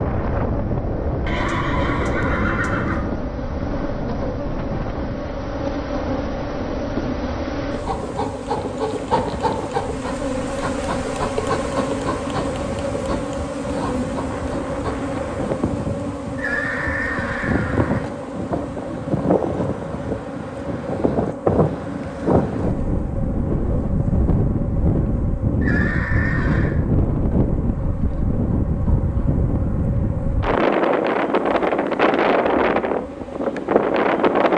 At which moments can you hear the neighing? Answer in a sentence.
You can hear the neighing from 1.2 to 3.1 s, from 16.4 to 18.1 s and from 25.6 to 26.8 s.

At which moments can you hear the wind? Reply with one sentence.
You can hear the wind from 0.0 to 34.5 s.